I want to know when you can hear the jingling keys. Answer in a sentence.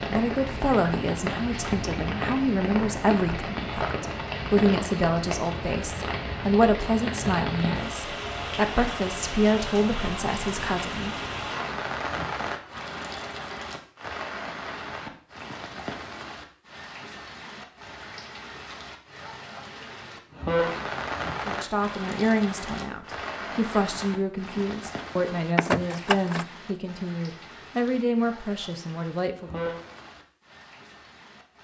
You can hear the jingling keys from 25.6 to 26.4 s.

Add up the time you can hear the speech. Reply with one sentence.
The speech can be heard for 19 seconds in total.